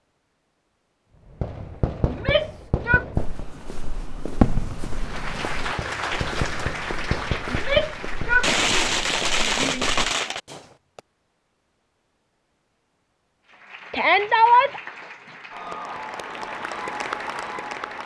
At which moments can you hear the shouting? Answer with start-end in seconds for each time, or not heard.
2.0-3.0, 7.5-9.9, 13.9-14.8.